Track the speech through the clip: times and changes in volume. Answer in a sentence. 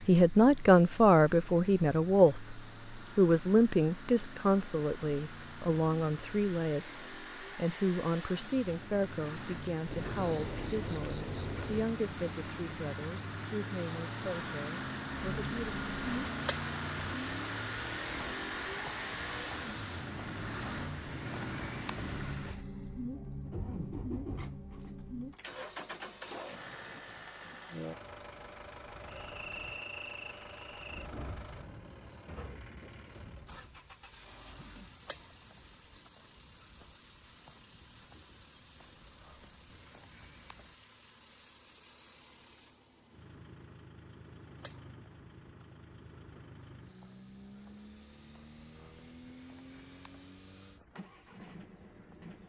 The speech can be heard from 0.1 to 15.8 s, getting quieter.